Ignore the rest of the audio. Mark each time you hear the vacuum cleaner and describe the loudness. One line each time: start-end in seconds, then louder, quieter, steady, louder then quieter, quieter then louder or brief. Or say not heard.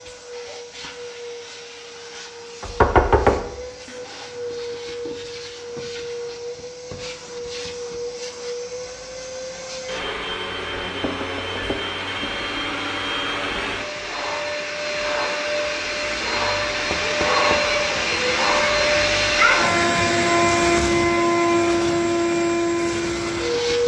0.0-23.8 louder.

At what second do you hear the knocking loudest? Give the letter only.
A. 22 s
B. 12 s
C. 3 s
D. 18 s
C.